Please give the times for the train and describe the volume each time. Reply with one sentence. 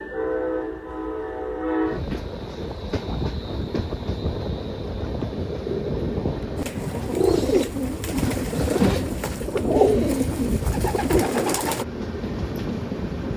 You can hear the train from 0.0 to 13.3 s, at a steady volume.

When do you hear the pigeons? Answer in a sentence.
The pigeons can be heard from 6.5 to 11.8 s.